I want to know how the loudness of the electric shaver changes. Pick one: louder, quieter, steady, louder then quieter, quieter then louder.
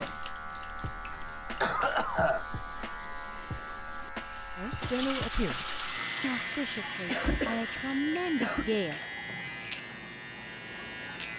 steady.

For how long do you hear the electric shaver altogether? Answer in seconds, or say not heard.
11 s.